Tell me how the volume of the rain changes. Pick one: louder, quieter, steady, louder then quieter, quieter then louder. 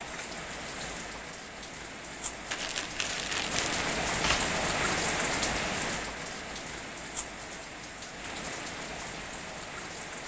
louder then quieter.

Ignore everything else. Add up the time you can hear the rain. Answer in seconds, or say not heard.
10 s.